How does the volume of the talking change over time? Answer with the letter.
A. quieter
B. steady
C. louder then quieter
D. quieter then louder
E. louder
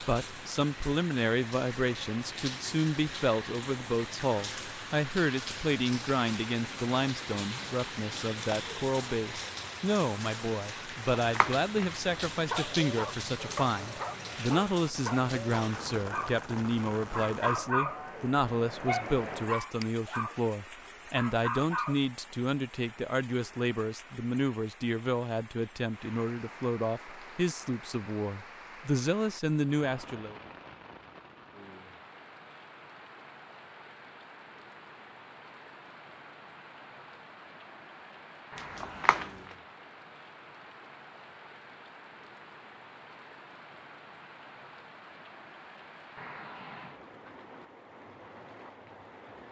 B.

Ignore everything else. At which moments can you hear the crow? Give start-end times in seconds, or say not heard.
not heard.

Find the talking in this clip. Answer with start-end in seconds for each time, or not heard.
0.0-30.4.